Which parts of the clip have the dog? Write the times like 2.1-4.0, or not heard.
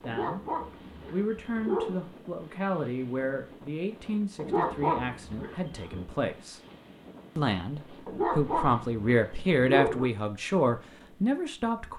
0.0-2.0, 4.3-6.0, 8.1-10.1.